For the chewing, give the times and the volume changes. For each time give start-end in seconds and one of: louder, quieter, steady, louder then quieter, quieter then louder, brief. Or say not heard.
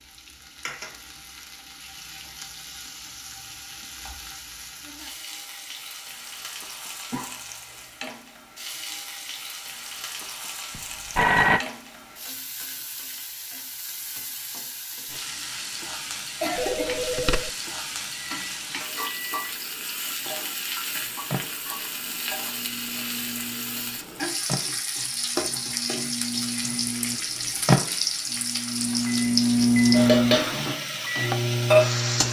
not heard.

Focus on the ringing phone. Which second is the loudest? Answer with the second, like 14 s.
11 s.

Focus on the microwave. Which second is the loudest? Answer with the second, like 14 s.
30 s.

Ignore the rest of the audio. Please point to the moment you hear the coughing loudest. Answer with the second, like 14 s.
17 s.